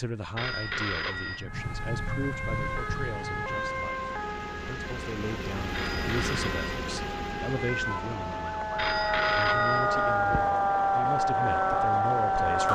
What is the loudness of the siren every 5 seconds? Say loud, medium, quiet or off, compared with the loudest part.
medium, medium, loud.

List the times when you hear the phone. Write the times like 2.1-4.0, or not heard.
0.3-1.5, 5.7-6.8, 8.8-10.6.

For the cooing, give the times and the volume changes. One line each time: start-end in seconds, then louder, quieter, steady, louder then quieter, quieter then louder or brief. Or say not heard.
not heard.